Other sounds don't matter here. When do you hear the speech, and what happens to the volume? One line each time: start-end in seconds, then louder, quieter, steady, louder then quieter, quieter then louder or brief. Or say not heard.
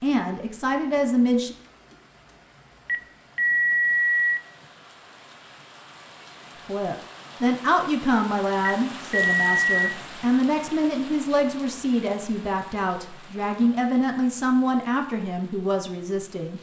0.0-1.6 brief
6.7-16.5 steady.